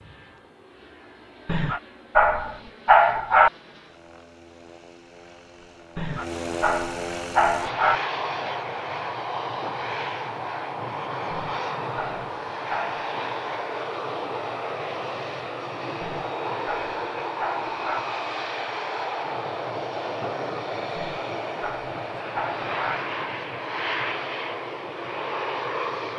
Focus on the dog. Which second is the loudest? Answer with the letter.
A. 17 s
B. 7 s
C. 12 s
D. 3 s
D.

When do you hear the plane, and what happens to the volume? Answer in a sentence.
The plane can be heard from 0.0 to 26.1 s, getting louder.